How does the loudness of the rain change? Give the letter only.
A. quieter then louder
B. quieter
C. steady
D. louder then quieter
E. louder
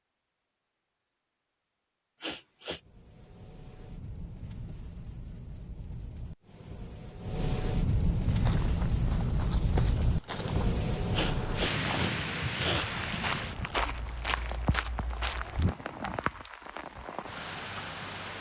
D.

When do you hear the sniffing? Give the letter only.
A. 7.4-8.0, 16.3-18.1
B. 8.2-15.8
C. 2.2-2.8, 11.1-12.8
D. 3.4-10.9
C.